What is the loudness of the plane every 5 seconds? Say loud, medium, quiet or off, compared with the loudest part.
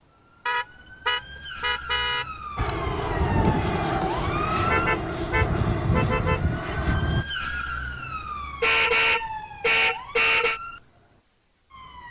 loud, loud, off.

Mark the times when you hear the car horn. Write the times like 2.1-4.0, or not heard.
0.5-2.2, 4.7-6.4, 8.6-10.6.